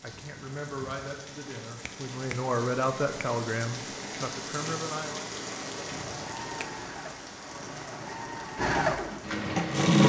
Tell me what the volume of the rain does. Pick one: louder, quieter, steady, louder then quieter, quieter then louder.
louder then quieter.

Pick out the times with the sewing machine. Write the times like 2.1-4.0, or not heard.
4.6-10.0.